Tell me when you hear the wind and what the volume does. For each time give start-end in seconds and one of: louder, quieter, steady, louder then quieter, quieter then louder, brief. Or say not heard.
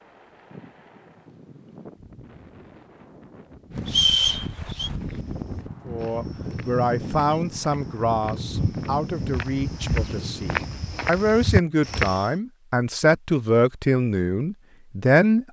0.0-10.8 louder.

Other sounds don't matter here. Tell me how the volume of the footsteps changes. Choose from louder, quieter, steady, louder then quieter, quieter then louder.
louder.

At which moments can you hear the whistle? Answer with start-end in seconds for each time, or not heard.
3.9-4.9.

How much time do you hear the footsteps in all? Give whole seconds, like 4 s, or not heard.
7 s.